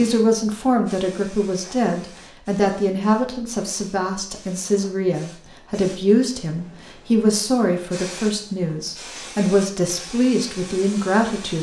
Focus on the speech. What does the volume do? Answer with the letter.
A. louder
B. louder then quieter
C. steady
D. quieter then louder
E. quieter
C.